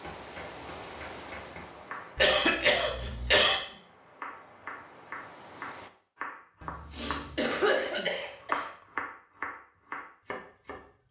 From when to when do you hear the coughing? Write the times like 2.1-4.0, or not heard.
2.1-3.6, 6.6-8.7.